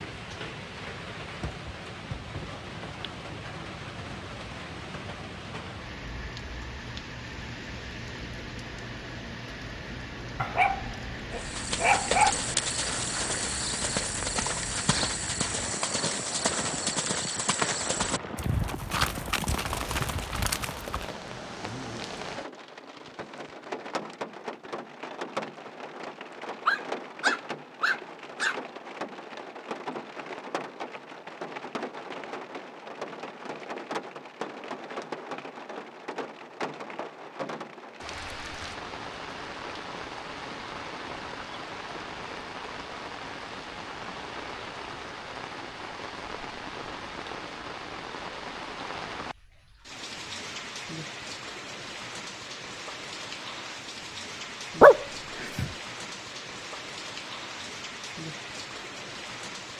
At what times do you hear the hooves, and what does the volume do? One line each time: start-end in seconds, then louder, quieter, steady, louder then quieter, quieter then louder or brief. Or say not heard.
11.3-21.1 steady.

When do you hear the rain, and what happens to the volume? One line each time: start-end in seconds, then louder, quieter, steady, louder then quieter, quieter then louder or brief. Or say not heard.
0.0-59.7 steady.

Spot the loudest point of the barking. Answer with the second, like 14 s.
55 s.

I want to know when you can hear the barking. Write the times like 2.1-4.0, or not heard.
10.3-12.3, 26.6-28.6, 54.8-55.6.